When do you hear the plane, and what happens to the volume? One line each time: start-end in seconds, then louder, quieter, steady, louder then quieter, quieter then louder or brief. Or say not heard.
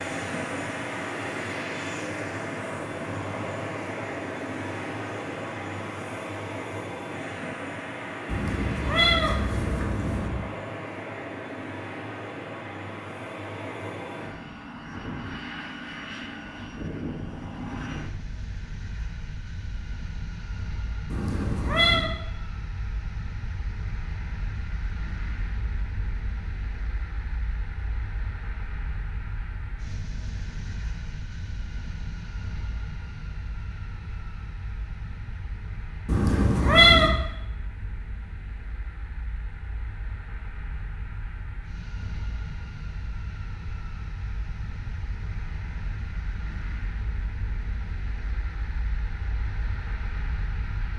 0.0-50.9 quieter.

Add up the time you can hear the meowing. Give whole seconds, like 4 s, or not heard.
4 s.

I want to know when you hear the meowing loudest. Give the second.
37 s.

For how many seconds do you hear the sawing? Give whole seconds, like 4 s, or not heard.
not heard.